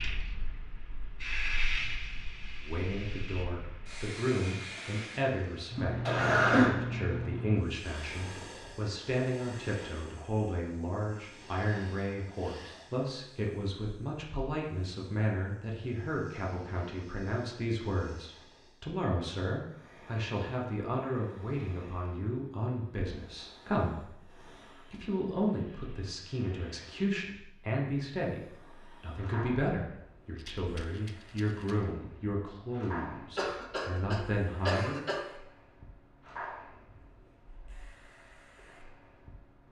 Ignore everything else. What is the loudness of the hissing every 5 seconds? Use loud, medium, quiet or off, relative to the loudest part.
medium, loud, quiet, quiet, quiet, quiet, quiet, quiet.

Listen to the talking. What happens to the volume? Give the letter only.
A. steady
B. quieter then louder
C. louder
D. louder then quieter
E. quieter
A.